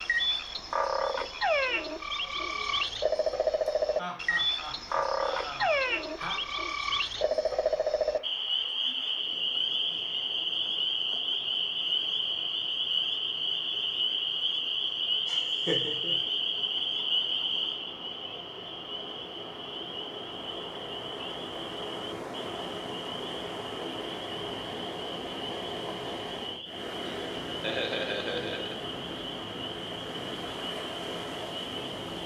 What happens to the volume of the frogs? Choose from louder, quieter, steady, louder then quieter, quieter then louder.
quieter.